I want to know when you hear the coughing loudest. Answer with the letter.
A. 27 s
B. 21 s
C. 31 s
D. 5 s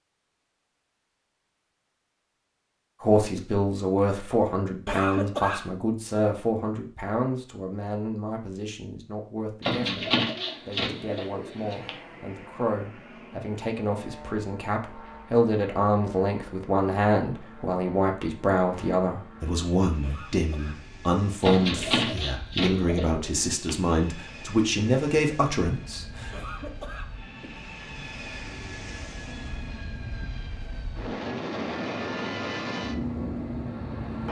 D.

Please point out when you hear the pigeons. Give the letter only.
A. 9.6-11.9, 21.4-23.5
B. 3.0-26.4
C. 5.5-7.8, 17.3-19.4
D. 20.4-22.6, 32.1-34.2
A.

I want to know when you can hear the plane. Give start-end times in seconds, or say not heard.
10.3-34.2.